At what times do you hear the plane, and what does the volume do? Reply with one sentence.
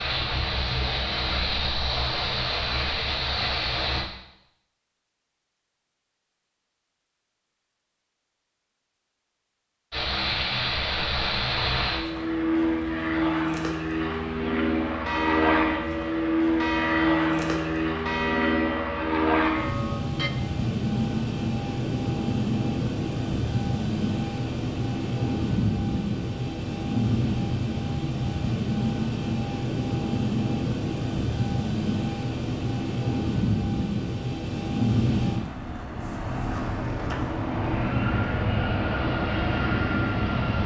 The plane can be heard from 0.0 to 4.0 s, at a steady volume; and from 9.9 to 40.6 s, at a steady volume.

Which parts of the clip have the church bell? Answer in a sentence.
You can hear the church bell from 15.1 to 20.3 s.